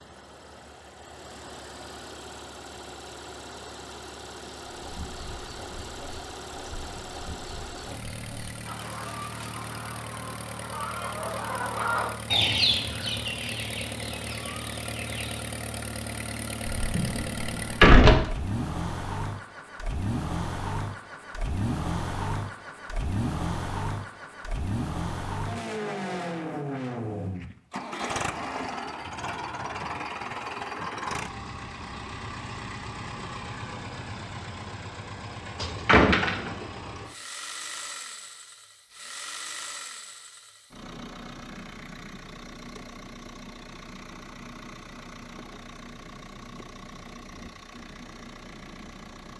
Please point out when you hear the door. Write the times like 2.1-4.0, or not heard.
16.8-18.2, 35.9-36.6.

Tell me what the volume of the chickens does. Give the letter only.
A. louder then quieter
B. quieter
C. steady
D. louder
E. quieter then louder
A.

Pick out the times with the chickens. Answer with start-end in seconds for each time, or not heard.
4.7-15.5.